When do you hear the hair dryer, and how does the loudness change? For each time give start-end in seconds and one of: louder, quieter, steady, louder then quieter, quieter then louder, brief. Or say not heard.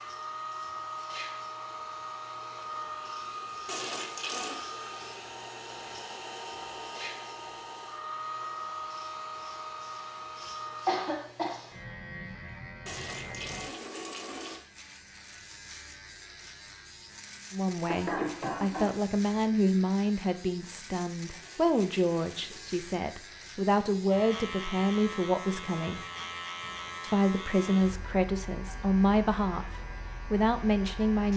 0.0-11.1 steady.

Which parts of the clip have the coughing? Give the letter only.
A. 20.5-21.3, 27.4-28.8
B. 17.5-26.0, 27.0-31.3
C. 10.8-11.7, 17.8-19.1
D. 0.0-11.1
C.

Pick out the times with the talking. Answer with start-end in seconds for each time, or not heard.
17.5-26.0, 27.0-31.3.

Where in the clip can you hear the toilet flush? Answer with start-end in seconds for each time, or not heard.
3.6-4.7, 12.8-14.7, 21.4-22.8.